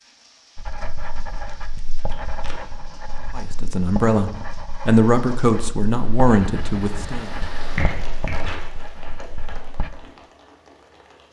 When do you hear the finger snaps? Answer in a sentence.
The finger snaps can be heard from 7.8 to 8.3 s.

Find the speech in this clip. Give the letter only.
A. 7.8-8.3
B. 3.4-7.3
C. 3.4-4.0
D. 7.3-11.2
B.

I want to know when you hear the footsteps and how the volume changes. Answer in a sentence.
You can't hear the footsteps here.